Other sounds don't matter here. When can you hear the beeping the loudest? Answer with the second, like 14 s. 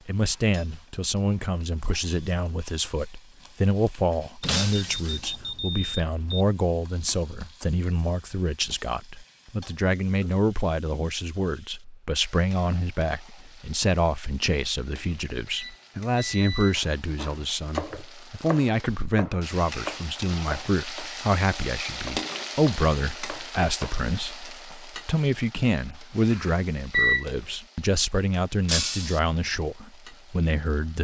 27 s.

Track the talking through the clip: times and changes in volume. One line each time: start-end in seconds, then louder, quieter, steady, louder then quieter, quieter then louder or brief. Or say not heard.
0.1-30.9 steady.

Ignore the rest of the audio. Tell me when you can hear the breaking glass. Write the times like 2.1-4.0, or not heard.
4.4-5.2, 28.6-29.2.